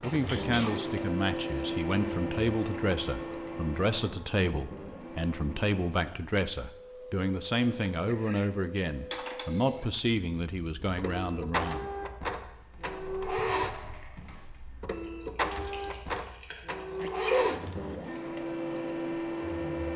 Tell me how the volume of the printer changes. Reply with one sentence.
The loudness of the printer goes down, then up.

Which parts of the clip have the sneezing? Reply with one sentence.
You can hear the sneezing from 0.2 to 0.9 s, from 7.8 to 8.4 s and from 17.0 to 17.6 s.